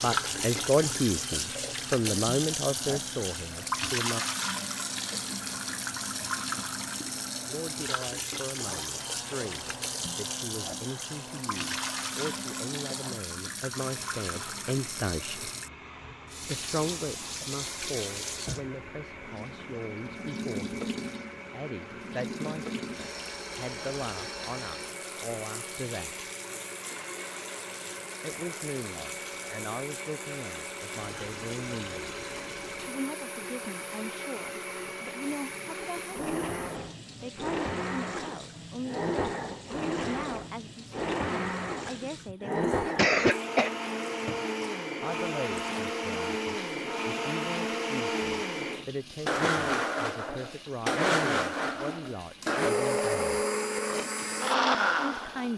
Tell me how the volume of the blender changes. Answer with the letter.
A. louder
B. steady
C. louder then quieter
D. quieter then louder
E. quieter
A.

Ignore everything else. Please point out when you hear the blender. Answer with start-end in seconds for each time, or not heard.
0.1-55.5.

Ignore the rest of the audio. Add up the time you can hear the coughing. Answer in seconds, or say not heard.
2 s.